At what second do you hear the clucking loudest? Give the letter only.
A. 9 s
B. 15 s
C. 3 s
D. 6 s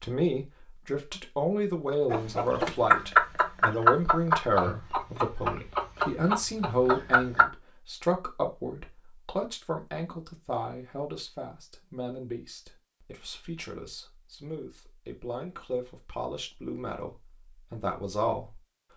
C.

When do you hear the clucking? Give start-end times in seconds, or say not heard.
2.1-7.5.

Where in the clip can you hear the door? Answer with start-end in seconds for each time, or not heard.
not heard.